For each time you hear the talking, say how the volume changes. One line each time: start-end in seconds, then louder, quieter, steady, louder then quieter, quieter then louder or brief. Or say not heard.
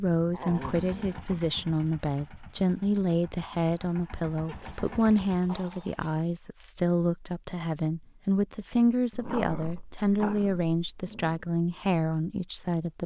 0.0-13.0 steady.